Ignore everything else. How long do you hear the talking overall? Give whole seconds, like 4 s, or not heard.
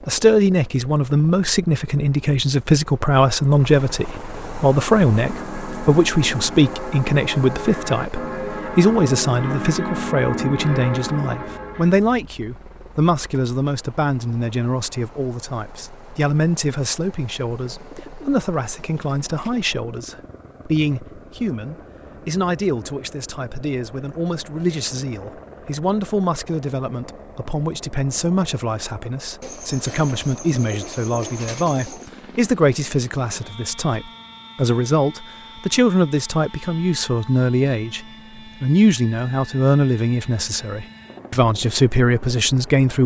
42 s.